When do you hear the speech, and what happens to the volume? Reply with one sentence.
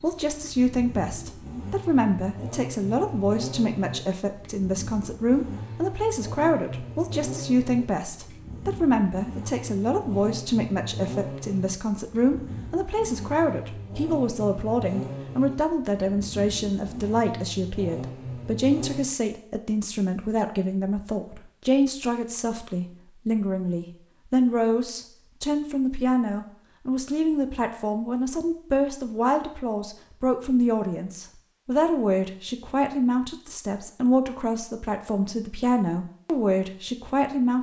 The speech can be heard from 0.0 to 37.5 s, at a steady volume.